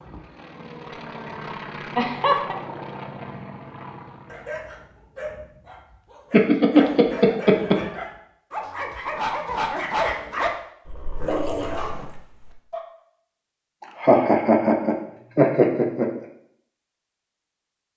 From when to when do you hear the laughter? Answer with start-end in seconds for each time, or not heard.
1.9-2.5, 6.3-7.8, 13.8-16.2.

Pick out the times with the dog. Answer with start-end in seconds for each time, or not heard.
4.2-12.8.